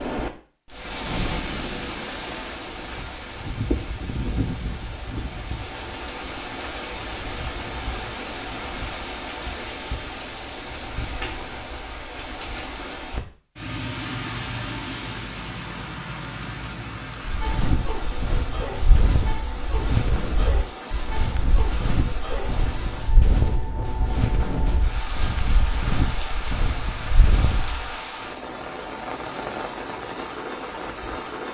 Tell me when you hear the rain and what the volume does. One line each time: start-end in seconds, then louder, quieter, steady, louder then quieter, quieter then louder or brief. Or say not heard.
0.0-31.4 steady.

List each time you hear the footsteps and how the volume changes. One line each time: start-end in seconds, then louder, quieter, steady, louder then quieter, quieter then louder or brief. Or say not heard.
17.2-28.0 steady.